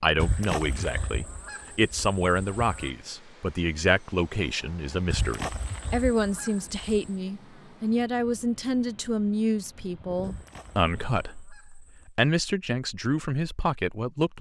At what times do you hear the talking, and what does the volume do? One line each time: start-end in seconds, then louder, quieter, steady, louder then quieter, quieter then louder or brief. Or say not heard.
0.0-14.3 steady.